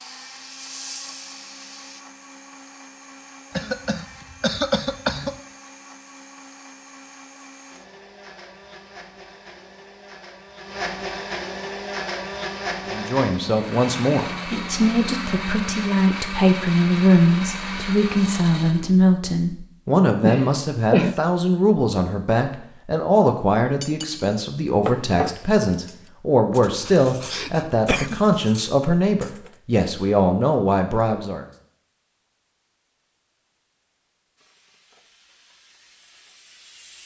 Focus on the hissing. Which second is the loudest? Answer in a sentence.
The loudest moment of the hissing is at 1 second.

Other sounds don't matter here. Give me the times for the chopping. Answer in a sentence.
The chopping can't be heard in this clip.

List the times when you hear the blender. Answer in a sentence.
You can hear the blender from 0.0 to 18.9 s.